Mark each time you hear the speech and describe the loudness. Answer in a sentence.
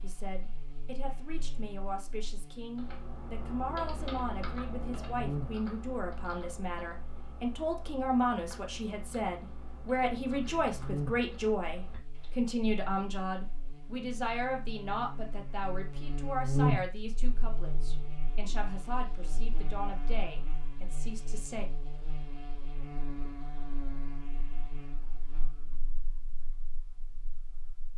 The speech can be heard from 0.0 to 21.6 s, getting louder then quieter.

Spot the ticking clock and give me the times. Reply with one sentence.
You can't hear the ticking clock here.